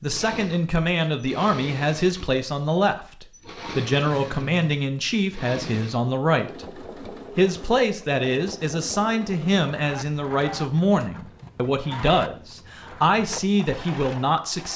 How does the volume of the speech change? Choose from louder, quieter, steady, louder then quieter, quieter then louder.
steady.